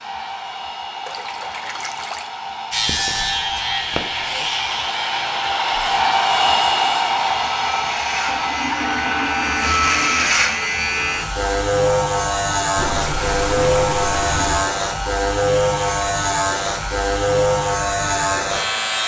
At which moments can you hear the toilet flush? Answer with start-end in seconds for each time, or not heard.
1.1-2.3, 8.2-10.3, 12.8-14.7.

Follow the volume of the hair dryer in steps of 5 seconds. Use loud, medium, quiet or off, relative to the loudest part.
medium, loud, medium, medium.